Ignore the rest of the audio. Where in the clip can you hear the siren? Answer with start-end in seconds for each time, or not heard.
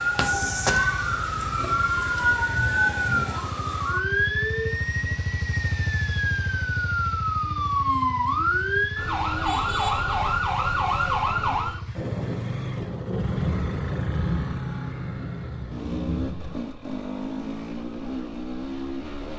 0.0-11.8.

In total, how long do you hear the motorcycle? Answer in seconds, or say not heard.
19 s.